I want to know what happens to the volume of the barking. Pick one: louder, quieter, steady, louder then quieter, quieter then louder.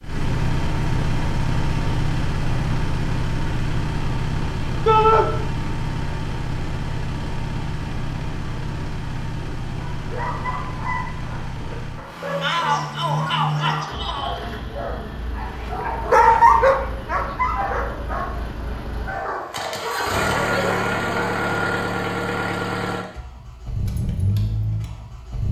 louder then quieter.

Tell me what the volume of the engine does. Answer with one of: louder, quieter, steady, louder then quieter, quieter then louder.
quieter then louder.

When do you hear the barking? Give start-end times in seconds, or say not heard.
9.9-20.9.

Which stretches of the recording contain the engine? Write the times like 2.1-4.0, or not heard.
0.0-25.4.